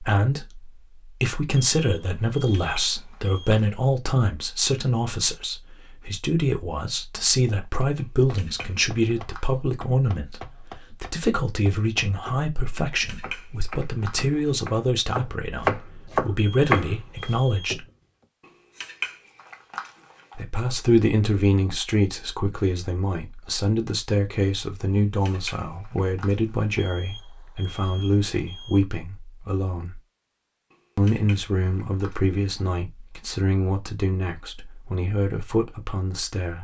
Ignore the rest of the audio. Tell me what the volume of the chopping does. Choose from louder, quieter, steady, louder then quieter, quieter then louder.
louder.